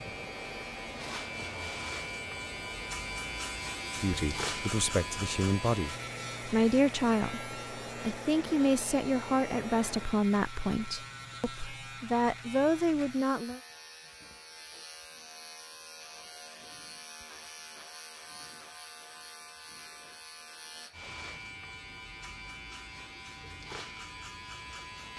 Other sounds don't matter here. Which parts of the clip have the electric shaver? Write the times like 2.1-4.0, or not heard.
0.0-25.1.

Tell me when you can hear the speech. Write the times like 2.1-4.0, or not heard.
4.0-13.6.